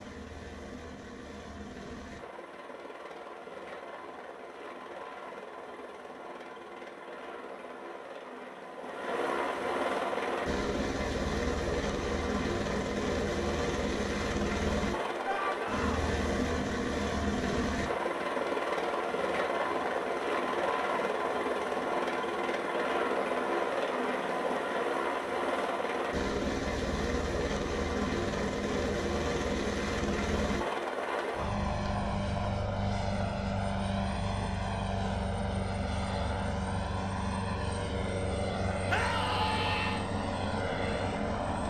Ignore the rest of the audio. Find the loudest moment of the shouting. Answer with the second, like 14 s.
39 s.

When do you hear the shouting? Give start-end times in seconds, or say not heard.
15.2-16.1, 38.9-40.0.